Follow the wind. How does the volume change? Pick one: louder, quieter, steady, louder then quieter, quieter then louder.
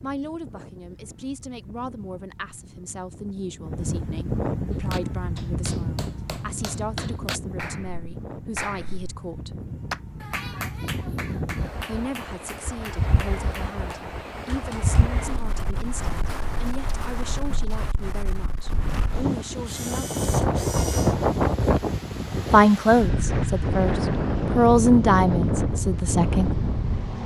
louder.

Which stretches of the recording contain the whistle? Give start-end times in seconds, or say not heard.
not heard.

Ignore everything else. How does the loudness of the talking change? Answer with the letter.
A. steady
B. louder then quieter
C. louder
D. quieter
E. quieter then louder
C.